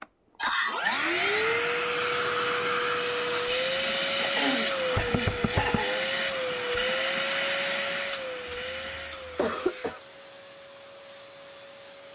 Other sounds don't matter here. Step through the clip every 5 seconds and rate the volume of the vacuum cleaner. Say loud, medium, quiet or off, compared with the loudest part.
loud, loud, quiet.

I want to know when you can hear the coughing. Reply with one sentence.
The coughing can be heard from 0.3 to 1.1 s, from 4.2 to 6.1 s and from 8.7 to 10.0 s.